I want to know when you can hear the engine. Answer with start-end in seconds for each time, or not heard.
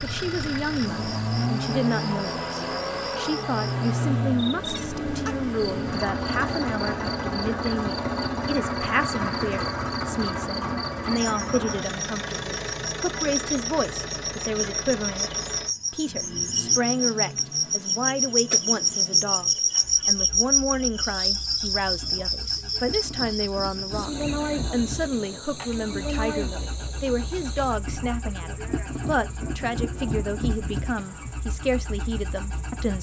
0.0-32.9.